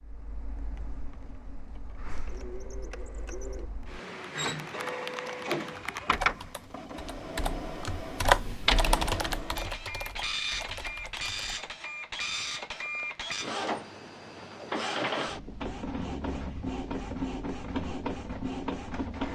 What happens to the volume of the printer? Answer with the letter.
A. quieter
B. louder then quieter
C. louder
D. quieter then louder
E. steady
C.